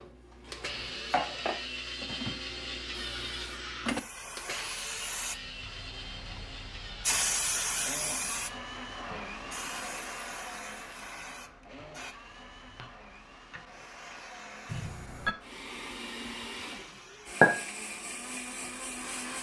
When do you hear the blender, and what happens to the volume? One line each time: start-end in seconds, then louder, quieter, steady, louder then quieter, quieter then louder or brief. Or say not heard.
0.0-19.3 quieter then louder.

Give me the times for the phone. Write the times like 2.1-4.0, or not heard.
14.7-15.3.